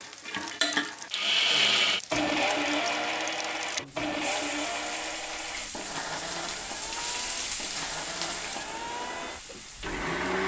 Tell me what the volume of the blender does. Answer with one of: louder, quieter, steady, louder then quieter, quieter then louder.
quieter.